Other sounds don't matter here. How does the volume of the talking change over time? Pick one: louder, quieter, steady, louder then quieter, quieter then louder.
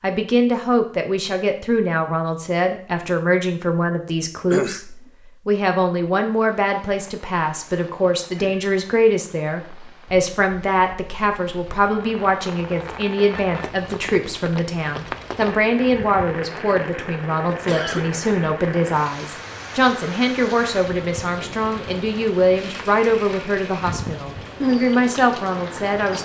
steady.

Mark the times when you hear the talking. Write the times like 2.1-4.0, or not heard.
0.0-26.1.